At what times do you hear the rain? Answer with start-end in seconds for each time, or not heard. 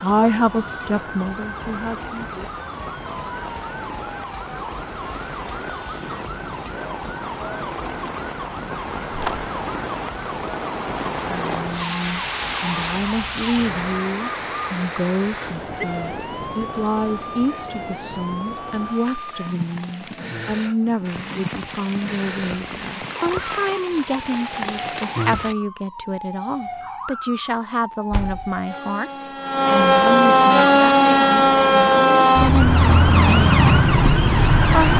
0.0-25.6.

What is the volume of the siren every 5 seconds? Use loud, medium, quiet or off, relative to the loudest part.
quiet, quiet, quiet, quiet, quiet, medium, loud.